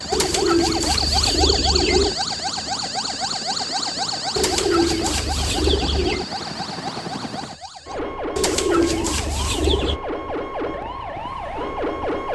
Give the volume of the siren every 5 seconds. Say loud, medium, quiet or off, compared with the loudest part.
loud, medium, loud.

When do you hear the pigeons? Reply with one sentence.
The pigeons can be heard from 0.1 to 2.1 s, from 4.3 to 6.2 s and from 8.3 to 10.0 s.